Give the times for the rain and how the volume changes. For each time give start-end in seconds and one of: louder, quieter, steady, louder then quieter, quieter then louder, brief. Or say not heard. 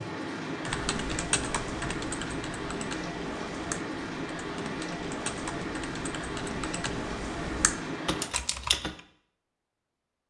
0.0-8.3 steady.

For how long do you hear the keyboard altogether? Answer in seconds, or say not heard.
8 s.